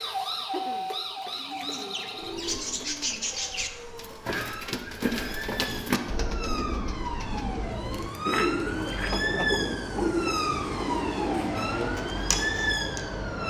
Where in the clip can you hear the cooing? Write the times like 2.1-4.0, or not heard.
1.2-13.1.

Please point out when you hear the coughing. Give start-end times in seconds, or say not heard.
0.3-0.9, 8.9-9.5.